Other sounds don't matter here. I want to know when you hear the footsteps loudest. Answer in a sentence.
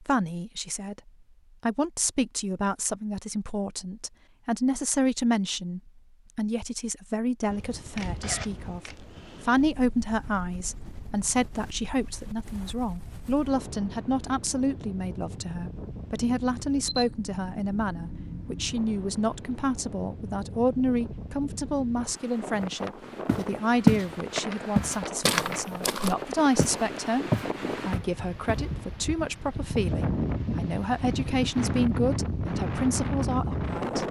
The volume of the footsteps peaks at 24 seconds.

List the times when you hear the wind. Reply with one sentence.
You can hear the wind from 7.5 to 34.0 s.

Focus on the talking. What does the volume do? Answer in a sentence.
The loudness of the talking stays about the same.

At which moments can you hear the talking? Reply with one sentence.
The talking can be heard from 0.0 to 34.0 s.